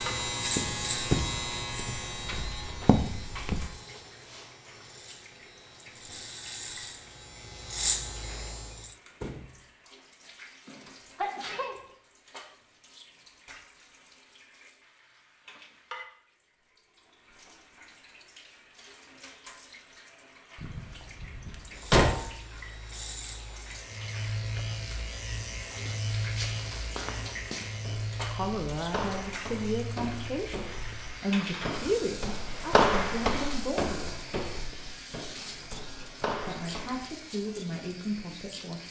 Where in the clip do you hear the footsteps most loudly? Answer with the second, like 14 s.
33 s.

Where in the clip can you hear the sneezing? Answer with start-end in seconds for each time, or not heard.
10.7-11.8.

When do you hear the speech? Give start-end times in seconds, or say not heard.
28.3-34.1, 36.5-38.8.